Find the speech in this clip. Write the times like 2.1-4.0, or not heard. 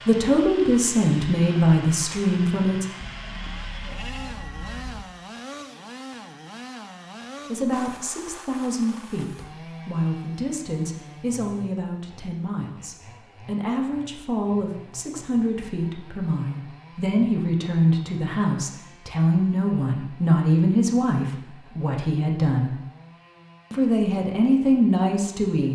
0.1-2.9, 7.5-22.8, 23.7-25.6.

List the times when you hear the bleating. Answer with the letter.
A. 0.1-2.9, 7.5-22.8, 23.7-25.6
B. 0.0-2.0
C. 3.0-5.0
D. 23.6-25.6
C.